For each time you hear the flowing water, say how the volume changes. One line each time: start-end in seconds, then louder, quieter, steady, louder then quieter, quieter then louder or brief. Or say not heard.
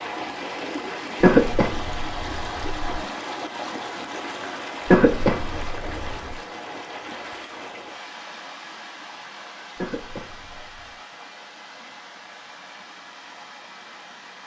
0.0-14.4 quieter.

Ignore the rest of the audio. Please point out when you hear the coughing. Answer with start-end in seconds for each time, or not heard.
1.2-3.0, 4.8-6.4, 9.8-11.0.